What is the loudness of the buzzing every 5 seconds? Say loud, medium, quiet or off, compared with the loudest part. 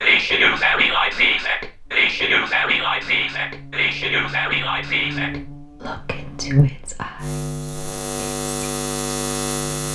quiet, loud.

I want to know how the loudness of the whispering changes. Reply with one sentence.
The volume of the whispering goes down.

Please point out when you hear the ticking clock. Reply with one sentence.
The ticking clock can't be heard in this clip.